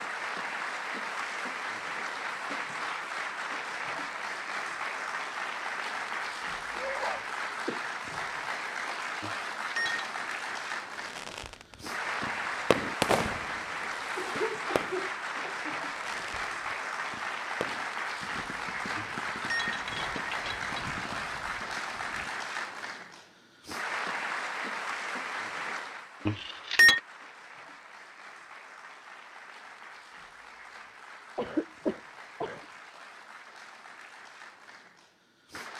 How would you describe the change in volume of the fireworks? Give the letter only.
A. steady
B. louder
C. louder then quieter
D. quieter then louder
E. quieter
E.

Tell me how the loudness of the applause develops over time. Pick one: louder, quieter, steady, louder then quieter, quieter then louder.
quieter.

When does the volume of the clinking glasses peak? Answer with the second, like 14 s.
27 s.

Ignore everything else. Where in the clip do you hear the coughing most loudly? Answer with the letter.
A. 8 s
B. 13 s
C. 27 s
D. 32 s
D.